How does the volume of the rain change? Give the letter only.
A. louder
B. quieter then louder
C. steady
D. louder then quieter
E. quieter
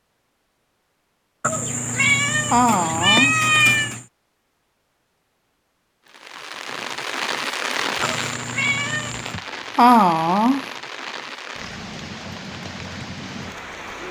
E.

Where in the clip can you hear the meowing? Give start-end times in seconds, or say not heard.
1.4-4.0, 8.0-9.4.